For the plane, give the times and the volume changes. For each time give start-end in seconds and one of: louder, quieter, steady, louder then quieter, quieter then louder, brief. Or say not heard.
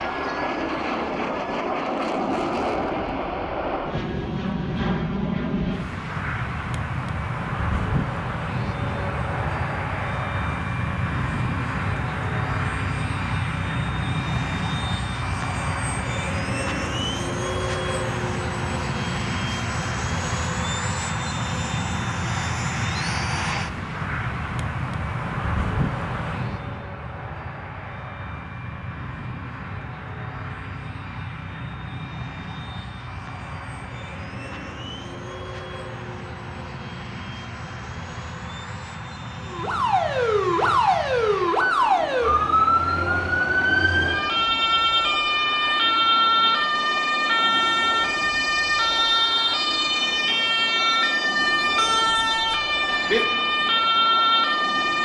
0.0-55.0 quieter.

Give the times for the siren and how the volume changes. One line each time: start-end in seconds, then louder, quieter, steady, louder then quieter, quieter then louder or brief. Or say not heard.
39.5-55.0 steady.